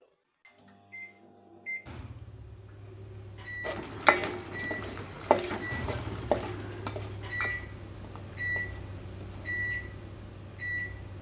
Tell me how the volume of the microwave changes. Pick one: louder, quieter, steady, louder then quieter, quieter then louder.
louder.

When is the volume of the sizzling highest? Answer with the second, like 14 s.
6 s.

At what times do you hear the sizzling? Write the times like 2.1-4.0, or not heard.
3.6-9.6.